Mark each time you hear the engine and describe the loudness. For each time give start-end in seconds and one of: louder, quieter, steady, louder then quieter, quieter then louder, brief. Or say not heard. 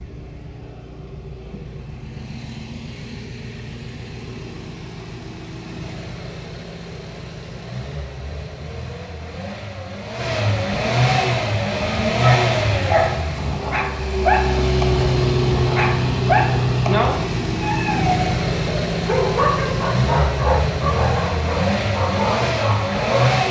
0.0-23.4 louder.